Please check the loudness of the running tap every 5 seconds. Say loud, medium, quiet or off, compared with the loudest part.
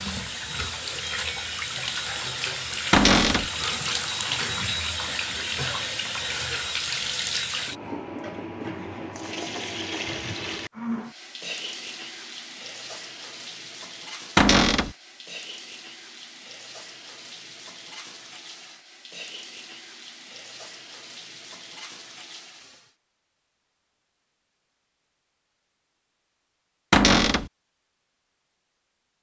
loud, loud, medium, quiet, quiet, off.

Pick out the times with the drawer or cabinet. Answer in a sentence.
You can hear the drawer or cabinet from 2.9 to 3.5 s, from 14.3 to 14.9 s and from 26.9 to 27.5 s.